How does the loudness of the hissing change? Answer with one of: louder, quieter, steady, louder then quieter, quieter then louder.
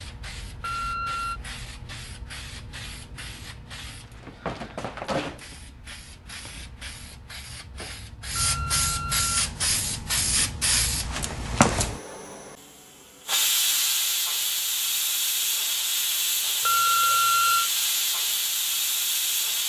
louder.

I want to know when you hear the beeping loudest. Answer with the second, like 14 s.
17 s.